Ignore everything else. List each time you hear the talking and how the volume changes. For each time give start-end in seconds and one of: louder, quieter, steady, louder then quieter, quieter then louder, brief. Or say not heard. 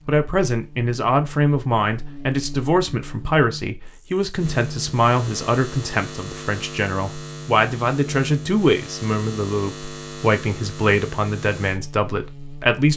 0.1-12.9 steady.